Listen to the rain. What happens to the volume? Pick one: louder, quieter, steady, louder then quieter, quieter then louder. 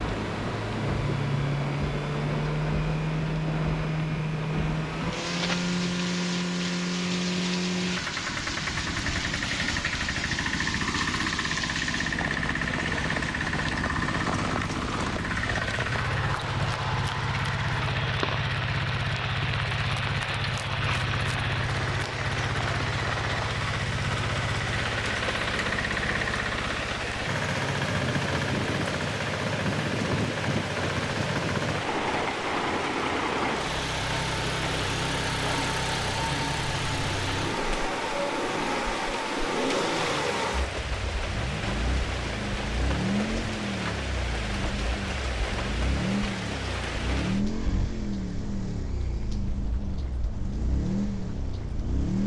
steady.